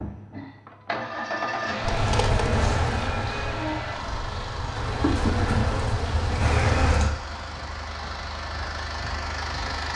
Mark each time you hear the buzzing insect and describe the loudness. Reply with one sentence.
You can hear the buzzing insect from 1.8 to 7.2 s, getting quieter then louder.